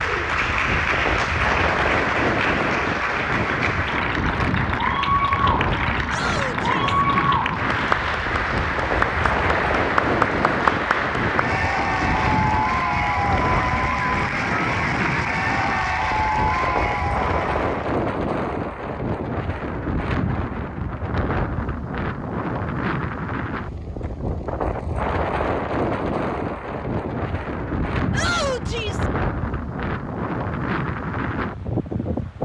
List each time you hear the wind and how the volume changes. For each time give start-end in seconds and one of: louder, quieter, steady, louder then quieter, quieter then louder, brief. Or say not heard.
0.0-32.4 steady.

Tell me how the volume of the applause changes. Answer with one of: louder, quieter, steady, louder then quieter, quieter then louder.
steady.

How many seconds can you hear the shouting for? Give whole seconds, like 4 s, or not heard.
2 s.